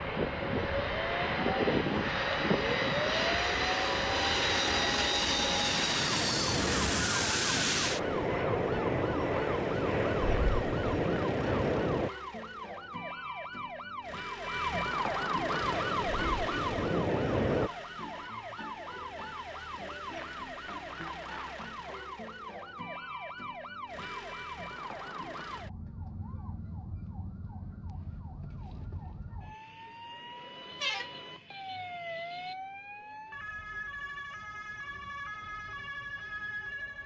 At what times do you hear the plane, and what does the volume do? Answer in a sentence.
You can hear the plane from 0.0 to 12.1 s, at a steady volume; and briefly from 15.4 to 17.7 s.